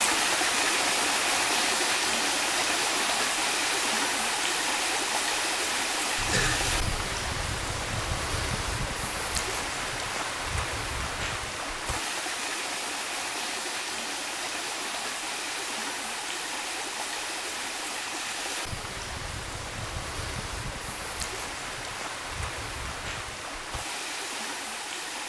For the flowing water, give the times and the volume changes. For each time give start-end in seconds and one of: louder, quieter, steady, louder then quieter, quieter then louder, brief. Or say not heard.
0.0-25.2 quieter.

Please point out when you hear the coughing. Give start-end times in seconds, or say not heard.
6.2-7.0.